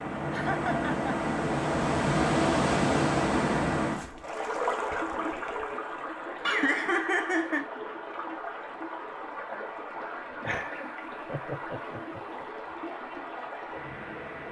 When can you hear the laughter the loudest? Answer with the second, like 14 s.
7 s.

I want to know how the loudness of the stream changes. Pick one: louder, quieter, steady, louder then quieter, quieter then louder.
quieter.